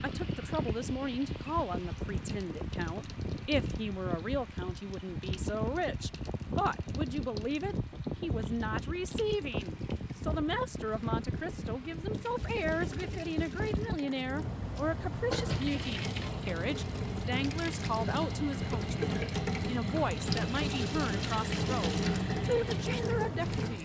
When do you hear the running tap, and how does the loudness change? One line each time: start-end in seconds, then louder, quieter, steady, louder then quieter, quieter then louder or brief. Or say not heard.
0.0-23.7 louder.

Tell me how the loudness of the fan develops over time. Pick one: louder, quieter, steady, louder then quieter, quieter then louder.
steady.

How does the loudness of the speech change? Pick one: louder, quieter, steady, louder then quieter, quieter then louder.
steady.